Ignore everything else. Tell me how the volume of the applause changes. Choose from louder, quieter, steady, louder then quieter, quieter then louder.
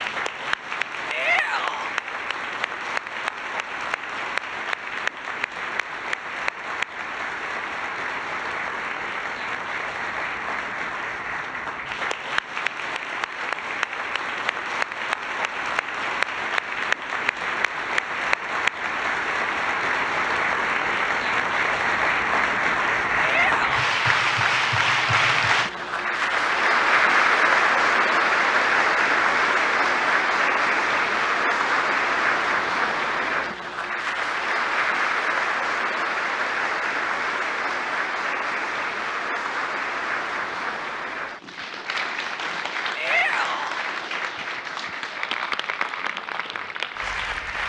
louder then quieter.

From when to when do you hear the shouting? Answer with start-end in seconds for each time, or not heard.
1.1-1.9, 23.1-23.9, 43.0-43.8.